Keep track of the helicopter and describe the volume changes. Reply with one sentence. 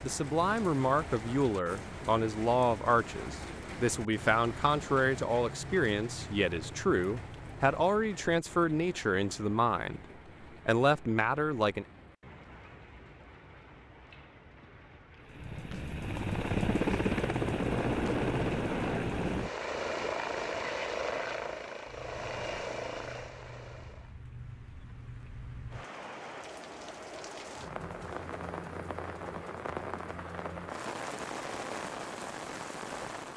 The volume of the helicopter goes down.